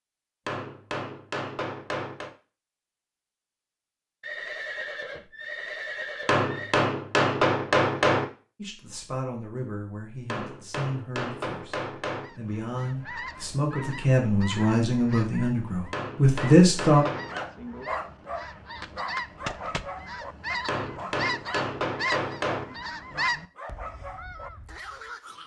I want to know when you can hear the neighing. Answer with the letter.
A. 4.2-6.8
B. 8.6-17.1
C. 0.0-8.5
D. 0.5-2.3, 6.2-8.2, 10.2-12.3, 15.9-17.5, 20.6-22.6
A.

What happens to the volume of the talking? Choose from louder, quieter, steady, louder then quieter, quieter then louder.
louder.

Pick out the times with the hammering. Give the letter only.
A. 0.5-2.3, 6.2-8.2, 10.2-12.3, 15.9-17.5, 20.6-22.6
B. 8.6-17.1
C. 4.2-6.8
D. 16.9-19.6
A.